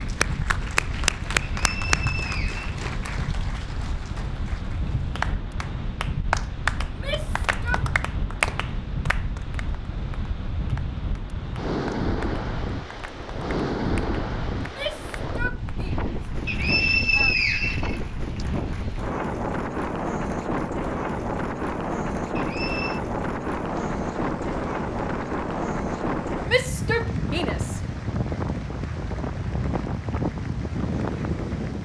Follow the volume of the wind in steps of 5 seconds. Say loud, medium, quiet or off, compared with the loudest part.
medium, medium, loud, loud, loud, loud, loud.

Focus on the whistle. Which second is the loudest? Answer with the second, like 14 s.
17 s.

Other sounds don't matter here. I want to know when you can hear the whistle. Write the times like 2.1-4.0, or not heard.
1.4-2.7, 16.4-18.4, 22.4-23.0.